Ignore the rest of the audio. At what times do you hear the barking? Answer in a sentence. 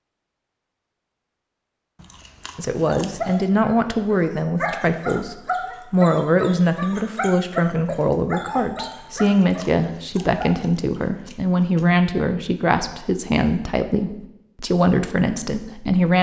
You can hear the barking from 2.9 to 10.5 s.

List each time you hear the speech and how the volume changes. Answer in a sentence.
You can hear the speech from 2.5 to 16.1 s, at a steady volume.